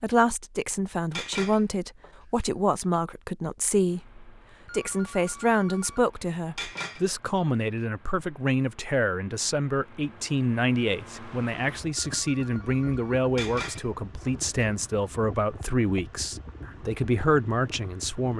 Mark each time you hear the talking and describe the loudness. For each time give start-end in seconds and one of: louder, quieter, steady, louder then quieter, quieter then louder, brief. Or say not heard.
0.0-18.3 steady.